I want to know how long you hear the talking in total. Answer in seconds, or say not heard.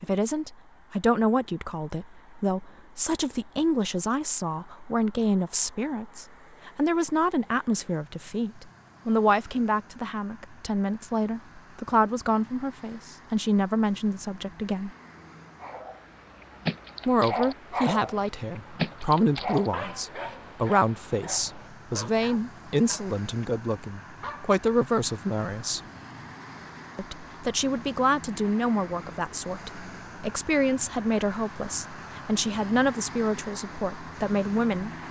32 s.